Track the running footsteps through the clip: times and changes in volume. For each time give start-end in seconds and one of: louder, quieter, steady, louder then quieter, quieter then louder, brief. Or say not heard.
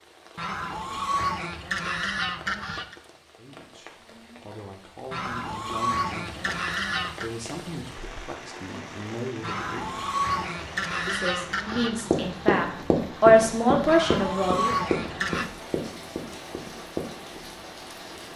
11.7-17.4 quieter.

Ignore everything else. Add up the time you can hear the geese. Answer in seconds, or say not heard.
9 s.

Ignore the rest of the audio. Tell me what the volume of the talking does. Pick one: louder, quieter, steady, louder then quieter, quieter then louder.
louder.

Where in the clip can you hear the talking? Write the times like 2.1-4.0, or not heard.
3.4-10.0, 11.1-14.9.